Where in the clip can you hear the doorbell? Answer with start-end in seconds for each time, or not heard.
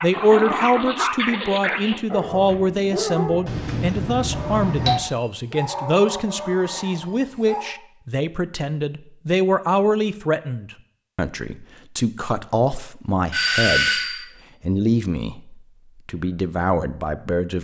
3.5-5.0, 13.3-14.2.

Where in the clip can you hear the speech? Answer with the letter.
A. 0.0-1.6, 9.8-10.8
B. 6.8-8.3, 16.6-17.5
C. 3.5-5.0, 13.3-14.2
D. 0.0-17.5
D.